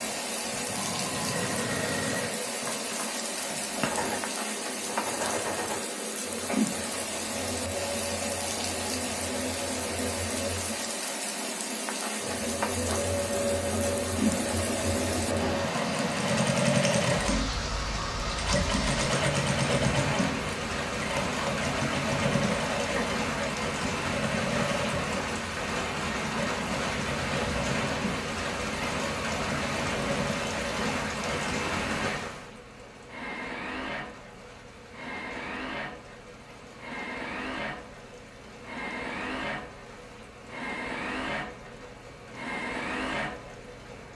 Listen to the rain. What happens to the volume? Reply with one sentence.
The loudness of the rain goes down.